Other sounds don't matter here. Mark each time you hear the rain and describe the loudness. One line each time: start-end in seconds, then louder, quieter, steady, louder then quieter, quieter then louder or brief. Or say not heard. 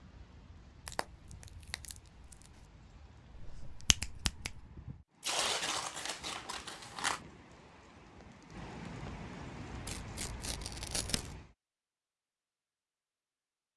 0.0-11.6 louder.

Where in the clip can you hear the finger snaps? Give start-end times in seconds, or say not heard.
3.4-4.7.